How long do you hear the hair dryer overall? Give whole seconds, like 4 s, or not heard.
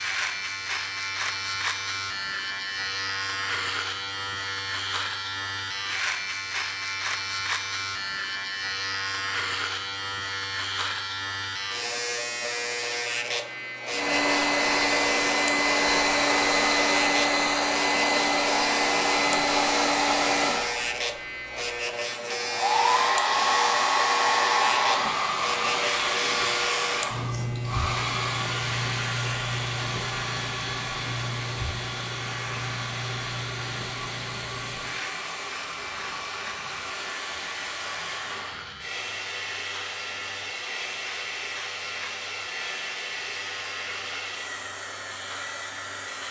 32 s.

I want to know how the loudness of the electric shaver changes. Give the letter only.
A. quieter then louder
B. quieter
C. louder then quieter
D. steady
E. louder
B.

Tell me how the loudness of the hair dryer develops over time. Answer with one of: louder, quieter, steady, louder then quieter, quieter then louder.
quieter.